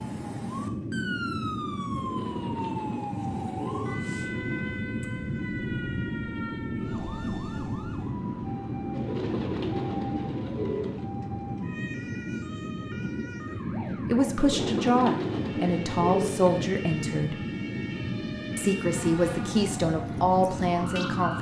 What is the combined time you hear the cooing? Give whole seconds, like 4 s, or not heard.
7 s.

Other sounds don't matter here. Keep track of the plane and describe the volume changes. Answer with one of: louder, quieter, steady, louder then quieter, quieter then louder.
steady.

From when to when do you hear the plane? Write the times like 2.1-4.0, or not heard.
0.0-21.3.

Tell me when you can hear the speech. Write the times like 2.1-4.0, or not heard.
14.1-17.4, 18.6-21.3.